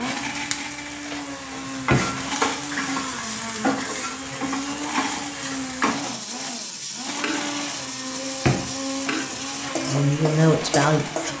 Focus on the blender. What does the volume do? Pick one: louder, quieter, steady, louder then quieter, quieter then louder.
steady.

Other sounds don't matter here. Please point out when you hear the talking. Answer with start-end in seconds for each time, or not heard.
9.8-11.1.